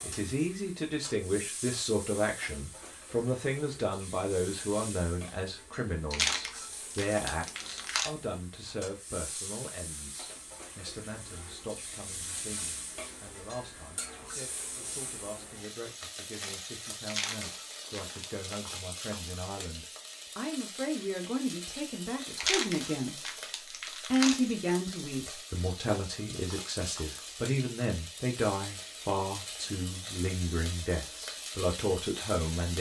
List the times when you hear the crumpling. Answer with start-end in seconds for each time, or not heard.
6.1-8.1, 17.1-18.6, 22.4-24.4.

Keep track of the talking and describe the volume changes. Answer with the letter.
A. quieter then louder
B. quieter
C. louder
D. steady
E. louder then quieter
A.